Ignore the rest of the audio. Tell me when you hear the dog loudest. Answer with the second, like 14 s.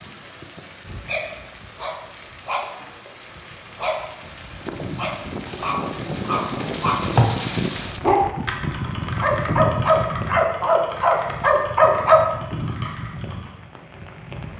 12 s.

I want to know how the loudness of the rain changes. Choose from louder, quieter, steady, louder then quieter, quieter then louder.
louder then quieter.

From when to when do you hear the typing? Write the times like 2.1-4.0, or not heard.
5.5-13.6.